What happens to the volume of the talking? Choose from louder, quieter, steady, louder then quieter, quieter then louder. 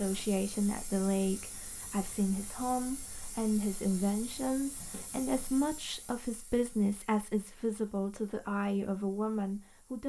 steady.